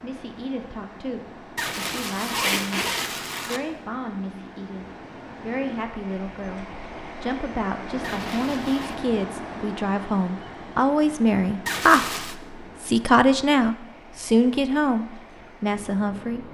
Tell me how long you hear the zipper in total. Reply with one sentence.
The zipper can be heard for 4 seconds in total.